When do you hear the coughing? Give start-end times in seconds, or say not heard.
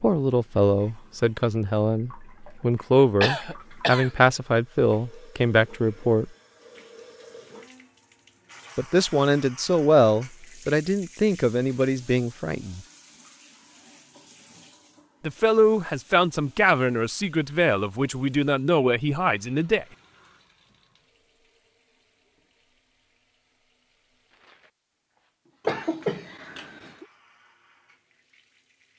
3.2-4.1, 25.6-27.1.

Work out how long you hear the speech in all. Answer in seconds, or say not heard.
15 s.